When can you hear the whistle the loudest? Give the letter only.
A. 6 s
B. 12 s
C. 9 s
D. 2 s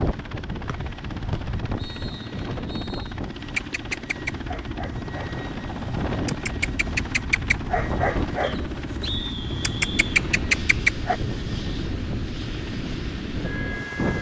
C.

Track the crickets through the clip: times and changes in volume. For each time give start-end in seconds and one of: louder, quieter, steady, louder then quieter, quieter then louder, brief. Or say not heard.
not heard.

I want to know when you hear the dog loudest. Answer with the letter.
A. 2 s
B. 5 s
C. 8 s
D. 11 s
D.